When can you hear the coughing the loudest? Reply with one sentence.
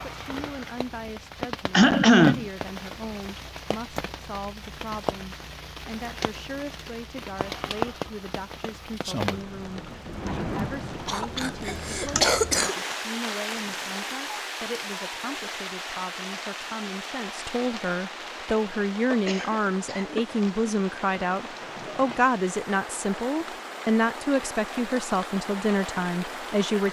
The volume of the coughing peaks at 2 seconds.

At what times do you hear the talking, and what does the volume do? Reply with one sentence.
The talking can be heard from 0.0 to 26.8 s, getting louder.